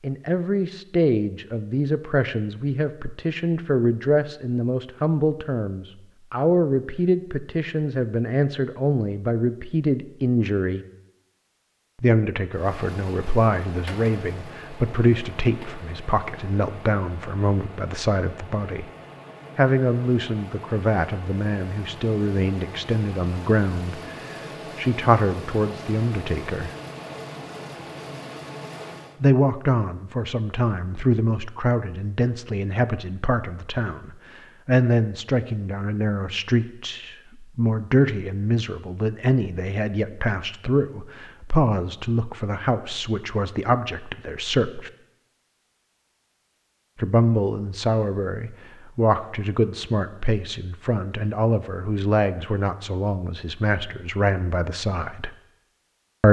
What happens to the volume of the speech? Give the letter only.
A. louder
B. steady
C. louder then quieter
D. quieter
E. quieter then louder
B.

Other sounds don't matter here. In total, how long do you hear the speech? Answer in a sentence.
The speech can be heard for 49 seconds in total.